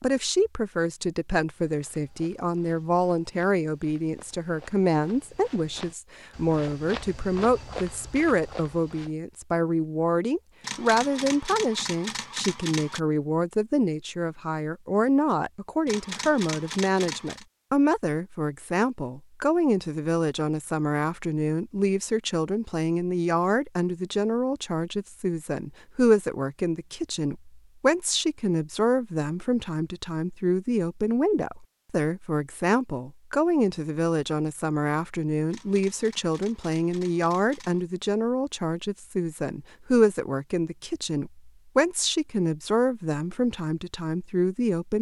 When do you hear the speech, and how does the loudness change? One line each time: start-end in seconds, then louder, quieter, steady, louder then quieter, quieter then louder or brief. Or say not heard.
0.0-44.9 steady.